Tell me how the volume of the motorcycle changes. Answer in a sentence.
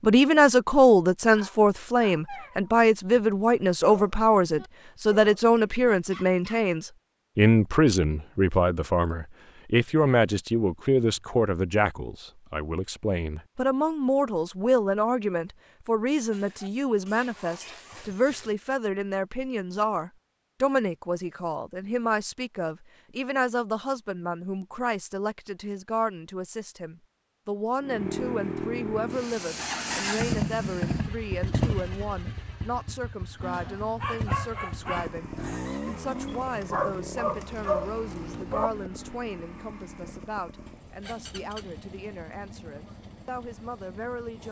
The loudness of the motorcycle goes down.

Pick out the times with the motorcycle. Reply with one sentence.
You can hear the motorcycle from 27.8 to 44.4 s.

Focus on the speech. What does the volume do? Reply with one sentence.
The loudness of the speech goes down.